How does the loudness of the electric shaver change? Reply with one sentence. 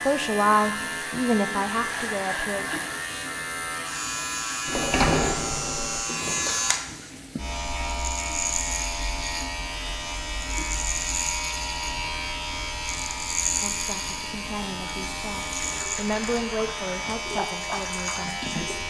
The volume of the electric shaver stays about the same.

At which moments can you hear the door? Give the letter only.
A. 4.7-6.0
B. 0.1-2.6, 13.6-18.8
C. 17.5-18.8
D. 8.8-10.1
A.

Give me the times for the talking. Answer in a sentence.
The talking can be heard from 0.1 to 2.6 s and from 13.6 to 18.8 s.